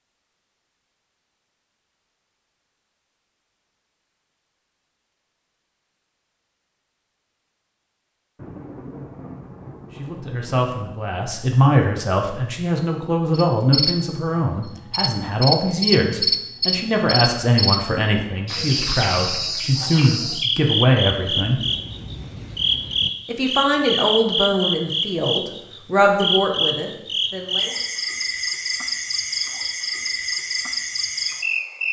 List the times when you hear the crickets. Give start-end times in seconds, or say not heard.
13.3-31.8.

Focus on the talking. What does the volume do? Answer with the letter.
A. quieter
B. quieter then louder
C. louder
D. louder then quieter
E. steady
E.